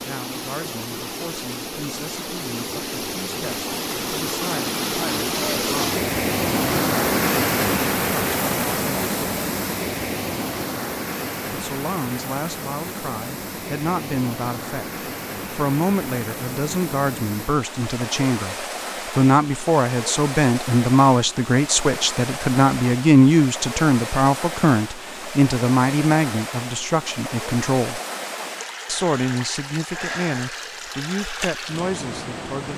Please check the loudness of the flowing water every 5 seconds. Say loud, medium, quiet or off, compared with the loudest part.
medium, loud, medium, medium, medium, medium, medium.